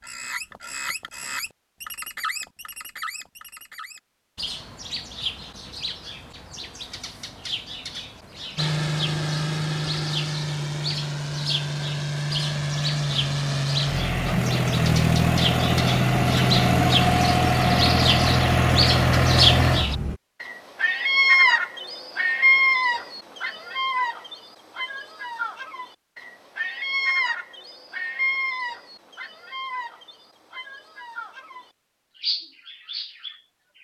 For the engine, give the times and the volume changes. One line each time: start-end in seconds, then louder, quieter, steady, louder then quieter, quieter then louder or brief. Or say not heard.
8.6-20.2 louder.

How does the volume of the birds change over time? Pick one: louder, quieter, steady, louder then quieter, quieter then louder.
louder then quieter.